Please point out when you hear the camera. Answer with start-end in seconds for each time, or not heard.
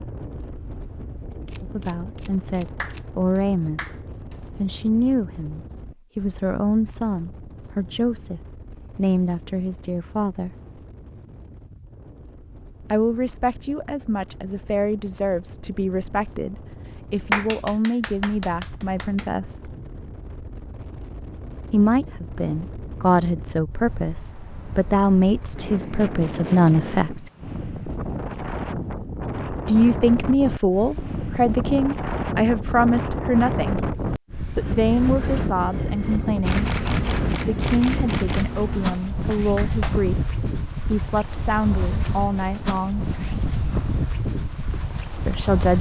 1.4-3.0, 36.4-39.0.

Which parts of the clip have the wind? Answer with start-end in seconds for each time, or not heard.
0.0-45.7.